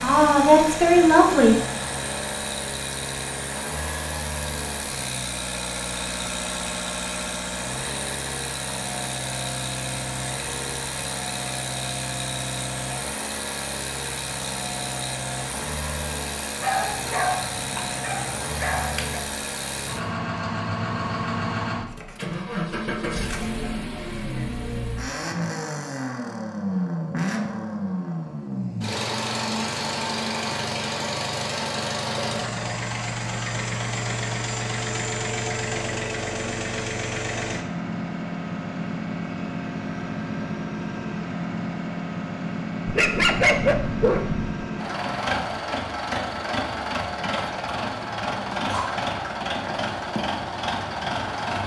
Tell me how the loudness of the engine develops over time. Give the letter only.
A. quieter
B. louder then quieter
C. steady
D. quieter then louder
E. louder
C.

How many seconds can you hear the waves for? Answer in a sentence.
The waves can't be heard in this clip.